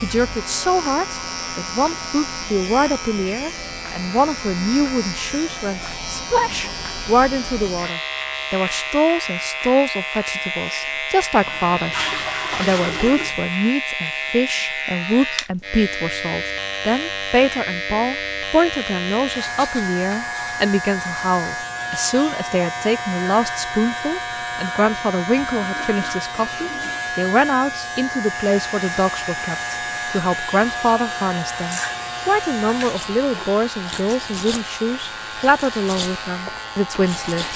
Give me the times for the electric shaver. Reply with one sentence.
The electric shaver can be heard from 0.0 to 37.5 s.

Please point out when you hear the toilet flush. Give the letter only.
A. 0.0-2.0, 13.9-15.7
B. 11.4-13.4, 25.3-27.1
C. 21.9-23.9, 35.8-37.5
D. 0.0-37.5
B.